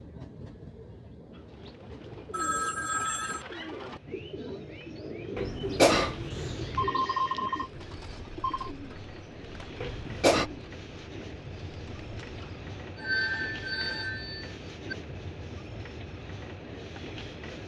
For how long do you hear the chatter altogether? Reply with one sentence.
The chatter can't be heard in this clip.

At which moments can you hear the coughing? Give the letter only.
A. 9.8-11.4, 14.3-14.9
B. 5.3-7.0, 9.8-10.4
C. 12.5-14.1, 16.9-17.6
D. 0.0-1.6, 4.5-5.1
B.